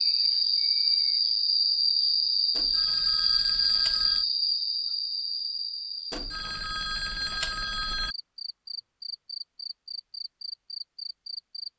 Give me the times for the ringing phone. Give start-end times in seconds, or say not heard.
2.5-4.2, 6.1-8.2.